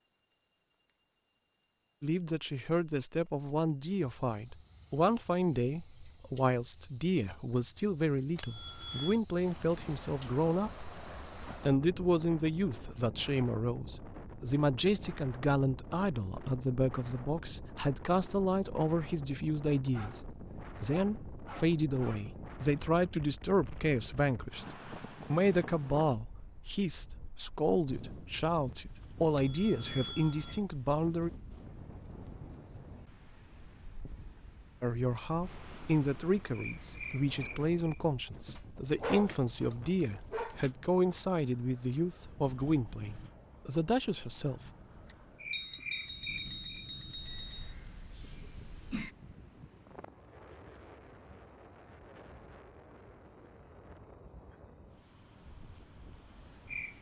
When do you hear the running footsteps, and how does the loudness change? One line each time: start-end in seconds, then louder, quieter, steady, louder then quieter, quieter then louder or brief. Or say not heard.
not heard.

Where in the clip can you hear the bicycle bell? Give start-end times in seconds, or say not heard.
8.3-9.2, 29.4-30.6, 45.0-47.8.